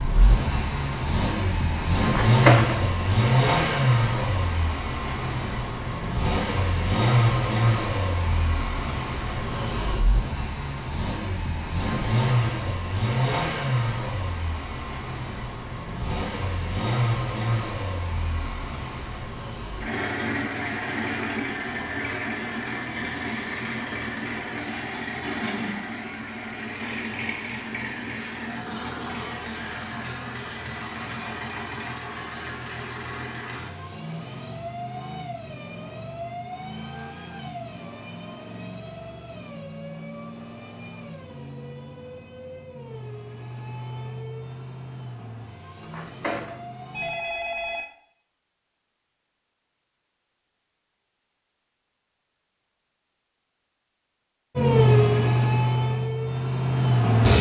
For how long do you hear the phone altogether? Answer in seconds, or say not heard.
3 s.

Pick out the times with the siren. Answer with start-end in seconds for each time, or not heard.
not heard.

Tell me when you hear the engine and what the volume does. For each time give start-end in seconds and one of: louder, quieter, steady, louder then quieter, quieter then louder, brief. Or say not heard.
0.0-47.1 quieter
54.5-57.3 brief.